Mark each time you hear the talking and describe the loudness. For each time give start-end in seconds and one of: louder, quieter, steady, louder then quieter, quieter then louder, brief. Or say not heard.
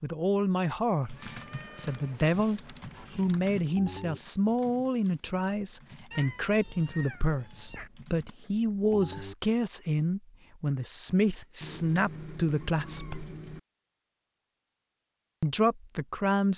0.0-13.2 steady
15.4-16.5 brief.